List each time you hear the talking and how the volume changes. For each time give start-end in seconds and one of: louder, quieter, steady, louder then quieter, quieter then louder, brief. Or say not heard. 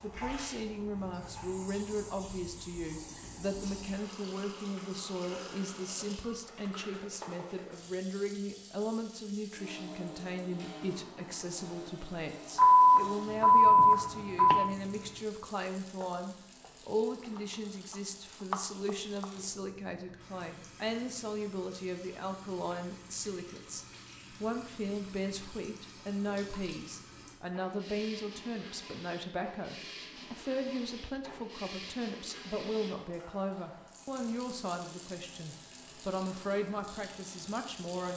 0.0-38.1 steady.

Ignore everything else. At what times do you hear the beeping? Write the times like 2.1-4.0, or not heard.
12.6-14.7.